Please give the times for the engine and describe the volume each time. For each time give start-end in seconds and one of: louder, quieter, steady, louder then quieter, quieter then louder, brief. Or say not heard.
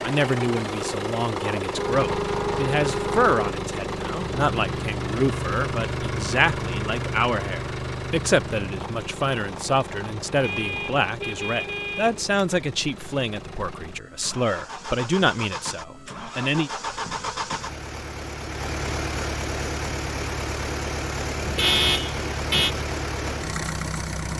0.0-24.3 quieter then louder.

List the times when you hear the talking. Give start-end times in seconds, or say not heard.
0.0-16.7.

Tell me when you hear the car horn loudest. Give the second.
22 s.